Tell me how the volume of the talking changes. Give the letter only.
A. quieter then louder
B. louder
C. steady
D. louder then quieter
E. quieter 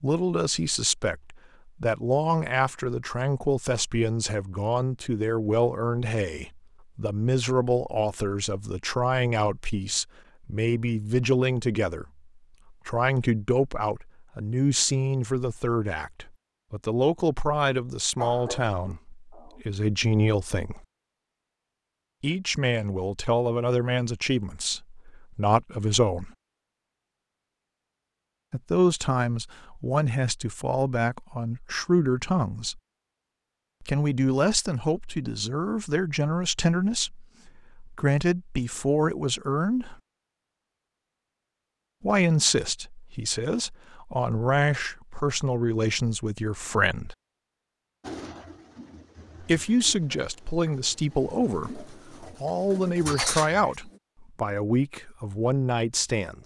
C.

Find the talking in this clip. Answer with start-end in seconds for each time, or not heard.
0.0-20.8, 22.2-26.3, 28.5-32.8, 33.8-40.0, 42.0-47.1, 49.4-56.4.